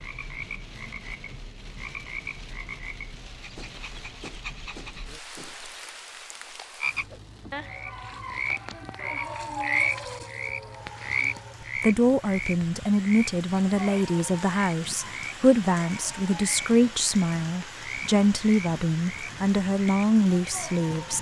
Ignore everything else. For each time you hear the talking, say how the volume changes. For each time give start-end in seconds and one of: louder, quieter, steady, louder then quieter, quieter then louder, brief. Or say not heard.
11.8-21.1 steady.